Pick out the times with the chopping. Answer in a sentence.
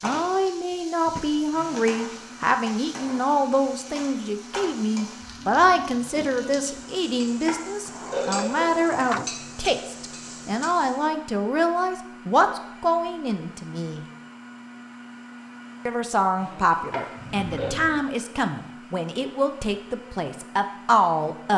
The chopping can't be heard in this clip.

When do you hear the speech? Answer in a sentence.
You can hear the speech from 0.0 to 14.1 s and from 15.8 to 21.5 s.